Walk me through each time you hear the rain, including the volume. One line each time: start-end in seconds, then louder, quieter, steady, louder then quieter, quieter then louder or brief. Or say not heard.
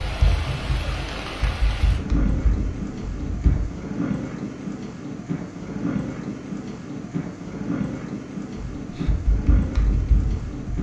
0.0-10.7 steady.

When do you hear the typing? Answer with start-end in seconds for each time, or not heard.
0.0-3.7, 8.8-10.7.